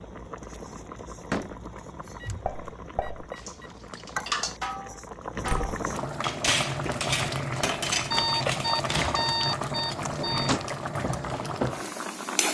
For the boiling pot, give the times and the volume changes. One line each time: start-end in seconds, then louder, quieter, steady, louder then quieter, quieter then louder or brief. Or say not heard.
0.0-12.4 louder.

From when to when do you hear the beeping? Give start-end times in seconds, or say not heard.
2.0-3.7, 8.1-10.6.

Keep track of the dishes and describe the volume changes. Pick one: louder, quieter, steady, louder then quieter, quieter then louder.
louder.